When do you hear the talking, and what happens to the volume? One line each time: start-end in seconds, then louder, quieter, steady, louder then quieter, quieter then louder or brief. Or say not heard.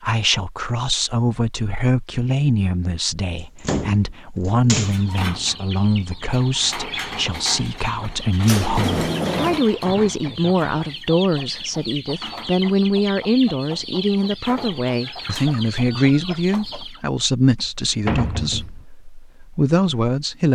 0.0-20.4 steady.